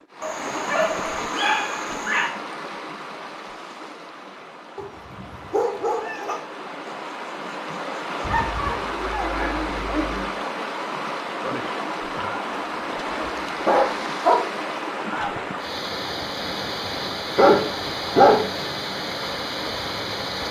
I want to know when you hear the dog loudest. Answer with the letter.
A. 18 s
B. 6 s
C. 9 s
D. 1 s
A.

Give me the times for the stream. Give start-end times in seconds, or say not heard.
0.0-20.4.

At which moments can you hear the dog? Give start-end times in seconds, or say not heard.
0.2-2.3, 4.8-6.4, 8.2-10.3, 12.5-14.4, 16.9-18.6.